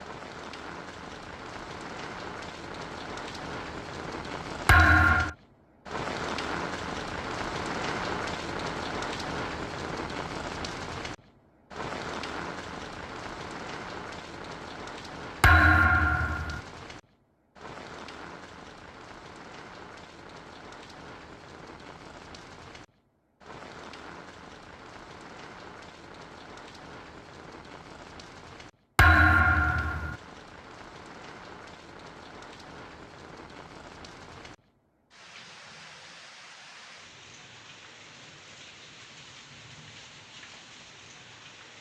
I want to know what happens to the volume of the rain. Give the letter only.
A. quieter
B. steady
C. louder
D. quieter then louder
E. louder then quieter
A.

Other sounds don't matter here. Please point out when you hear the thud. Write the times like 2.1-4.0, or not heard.
4.7-5.3, 15.4-16.6, 28.9-30.1.